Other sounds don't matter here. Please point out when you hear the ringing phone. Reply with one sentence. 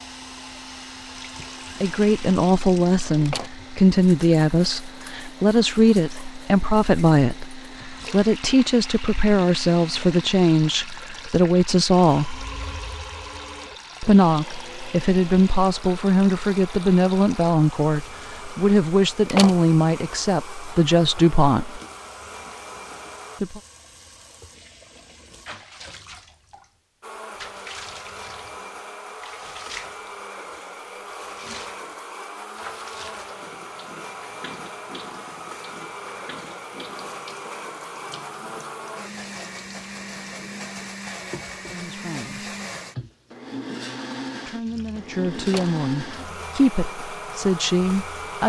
The ringing phone can be heard from 12.3 to 13.8 s.